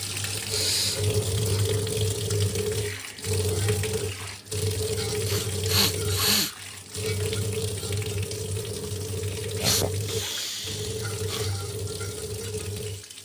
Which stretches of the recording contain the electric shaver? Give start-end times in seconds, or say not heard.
not heard.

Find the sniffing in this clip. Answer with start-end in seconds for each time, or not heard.
0.1-1.7, 5.2-6.5, 9.1-11.5.